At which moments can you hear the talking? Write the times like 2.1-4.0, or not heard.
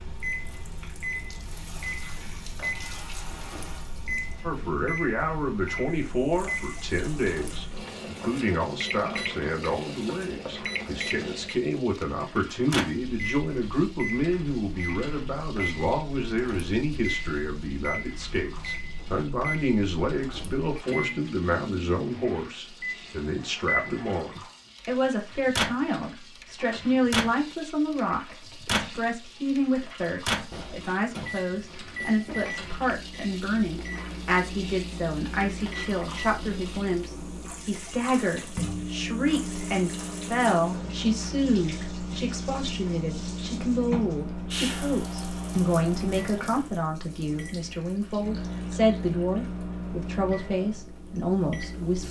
4.4-52.0.